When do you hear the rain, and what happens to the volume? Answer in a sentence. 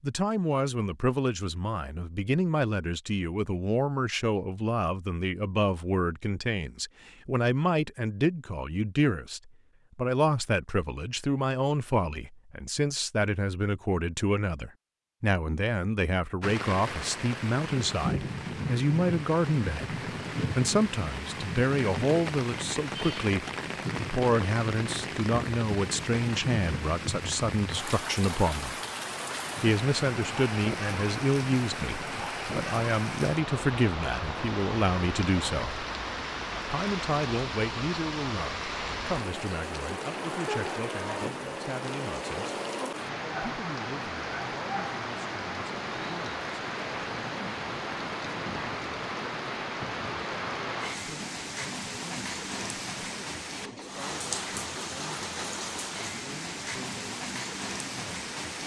The rain can be heard from 16.4 to 58.6 s, at a steady volume.